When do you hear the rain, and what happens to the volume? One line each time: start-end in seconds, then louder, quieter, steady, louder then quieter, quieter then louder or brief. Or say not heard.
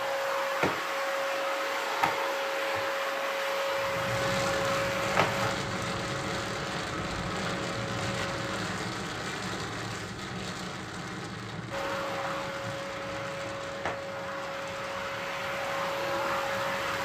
3.7-17.0 quieter.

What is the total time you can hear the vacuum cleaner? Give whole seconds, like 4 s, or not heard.
14 s.